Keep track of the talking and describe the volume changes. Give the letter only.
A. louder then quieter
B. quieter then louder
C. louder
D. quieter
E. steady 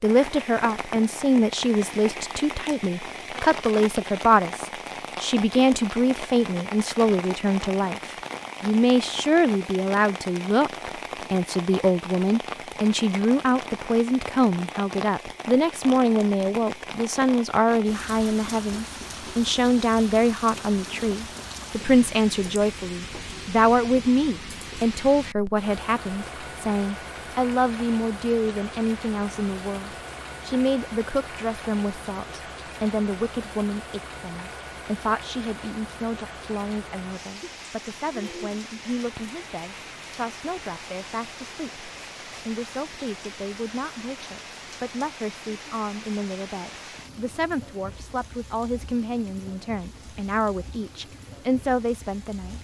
D.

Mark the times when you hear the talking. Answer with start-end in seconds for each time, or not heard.
0.0-52.6.